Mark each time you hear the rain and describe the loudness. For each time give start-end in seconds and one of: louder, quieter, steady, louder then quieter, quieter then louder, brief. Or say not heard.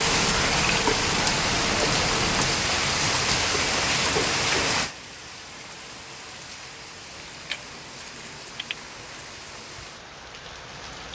0.0-11.1 quieter.